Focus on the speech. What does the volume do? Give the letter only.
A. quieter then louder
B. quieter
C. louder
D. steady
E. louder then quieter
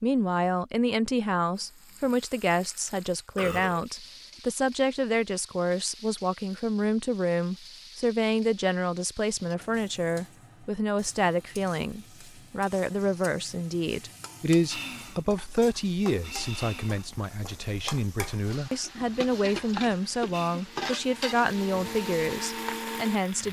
D.